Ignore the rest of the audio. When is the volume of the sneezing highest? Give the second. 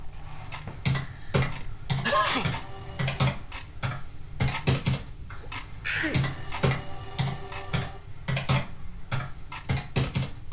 2 s.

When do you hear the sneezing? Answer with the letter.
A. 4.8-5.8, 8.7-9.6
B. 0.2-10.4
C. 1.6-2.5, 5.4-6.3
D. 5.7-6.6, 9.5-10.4
C.